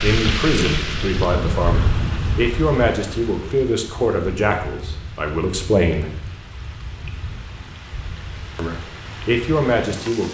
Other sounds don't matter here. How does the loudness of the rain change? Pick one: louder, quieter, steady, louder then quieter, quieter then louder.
quieter.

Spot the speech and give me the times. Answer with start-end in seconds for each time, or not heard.
0.0-6.1, 8.6-10.3.